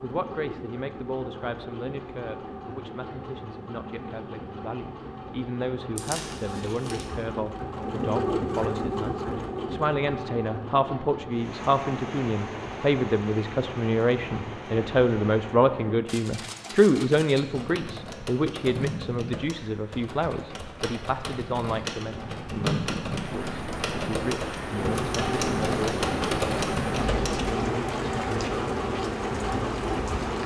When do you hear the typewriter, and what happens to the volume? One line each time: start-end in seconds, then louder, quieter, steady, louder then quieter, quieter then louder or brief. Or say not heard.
16.1-27.4 louder.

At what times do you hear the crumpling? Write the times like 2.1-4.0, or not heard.
6.0-7.0.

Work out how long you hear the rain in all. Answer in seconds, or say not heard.
19 s.